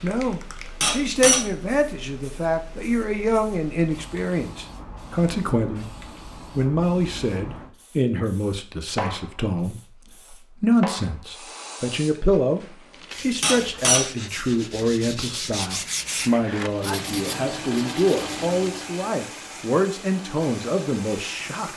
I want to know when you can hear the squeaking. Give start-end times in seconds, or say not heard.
0.8-1.4, 13.4-14.1.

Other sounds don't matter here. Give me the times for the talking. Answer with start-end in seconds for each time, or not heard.
0.0-6.0, 6.5-21.7.